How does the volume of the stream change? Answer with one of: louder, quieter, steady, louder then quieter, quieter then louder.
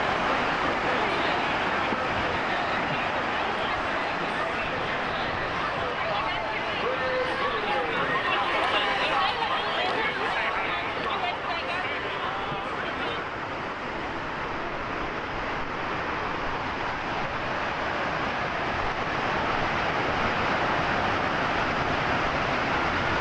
quieter then louder.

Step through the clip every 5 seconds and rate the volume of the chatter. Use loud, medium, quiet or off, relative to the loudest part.
medium, loud, loud, off, off.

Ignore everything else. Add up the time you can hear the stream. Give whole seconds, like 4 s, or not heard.
23 s.